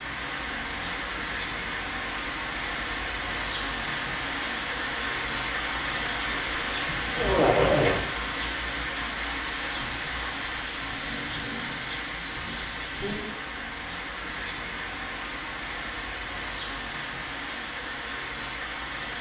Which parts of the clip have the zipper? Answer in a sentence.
You can hear the zipper from 7.2 to 8.1 s.